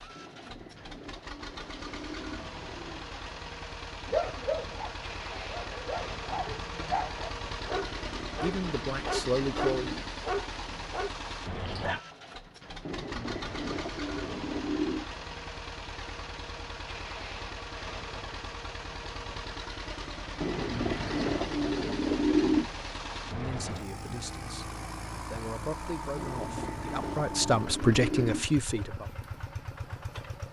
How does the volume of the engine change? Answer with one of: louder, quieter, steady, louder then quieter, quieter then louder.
steady.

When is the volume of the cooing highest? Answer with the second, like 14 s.
22 s.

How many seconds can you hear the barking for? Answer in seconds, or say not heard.
8 s.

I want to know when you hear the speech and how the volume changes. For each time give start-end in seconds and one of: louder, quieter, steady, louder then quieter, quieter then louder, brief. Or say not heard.
8.4-9.9 brief
23.2-29.1 louder.